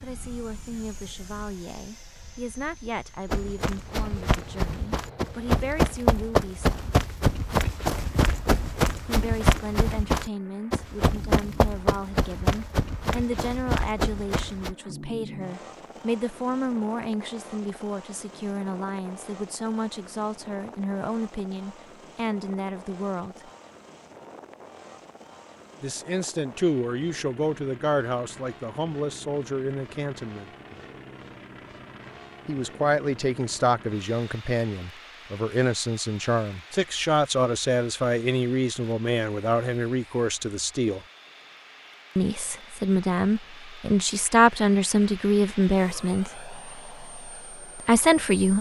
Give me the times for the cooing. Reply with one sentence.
You can't hear the cooing here.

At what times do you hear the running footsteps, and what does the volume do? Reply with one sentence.
The running footsteps can be heard from 3.2 to 14.8 s, getting louder then quieter.